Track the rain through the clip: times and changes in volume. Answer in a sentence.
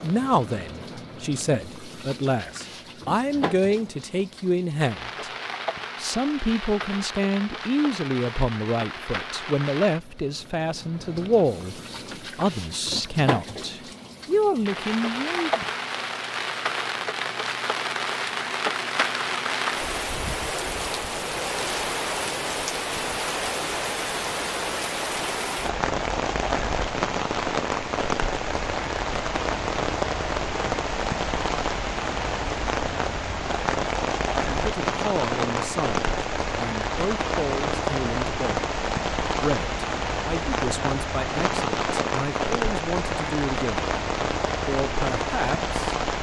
You can hear the rain from 0.0 to 46.1 s, getting louder.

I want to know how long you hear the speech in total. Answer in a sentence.
You can hear the speech for 25 seconds altogether.